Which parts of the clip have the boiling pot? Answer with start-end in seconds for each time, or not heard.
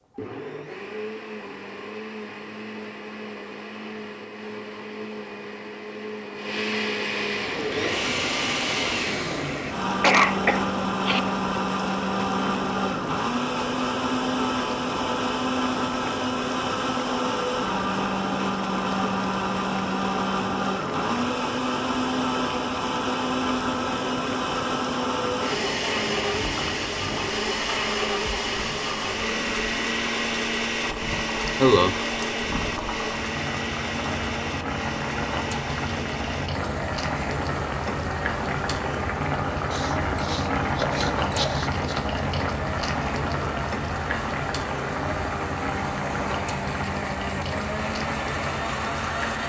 7.2-49.4.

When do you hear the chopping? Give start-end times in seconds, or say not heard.
39.7-42.0.